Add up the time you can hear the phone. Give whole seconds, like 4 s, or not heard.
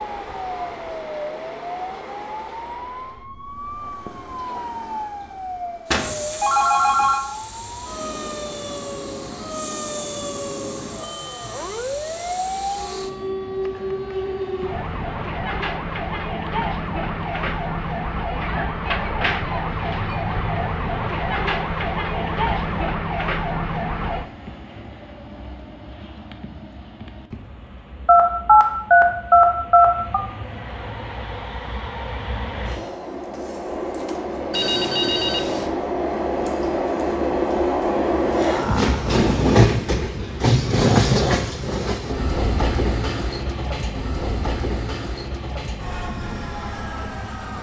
5 s.